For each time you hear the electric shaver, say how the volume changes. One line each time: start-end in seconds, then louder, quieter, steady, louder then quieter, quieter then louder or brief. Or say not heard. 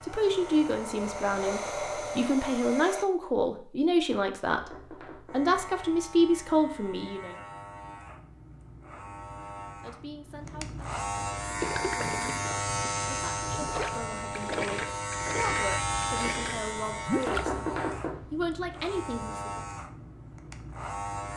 0.0-2.4 brief
5.2-21.3 louder then quieter.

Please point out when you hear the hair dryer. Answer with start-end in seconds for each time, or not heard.
0.0-3.0.